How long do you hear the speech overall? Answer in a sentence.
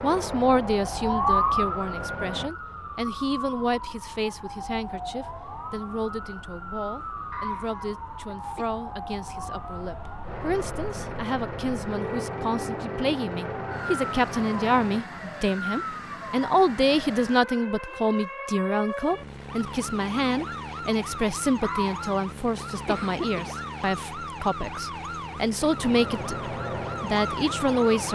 You can hear the speech for 28 seconds altogether.